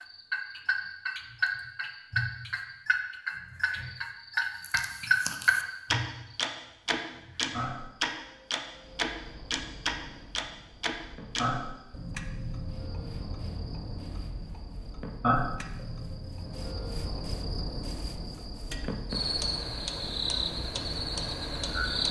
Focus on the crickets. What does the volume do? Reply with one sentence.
The loudness of the crickets goes up.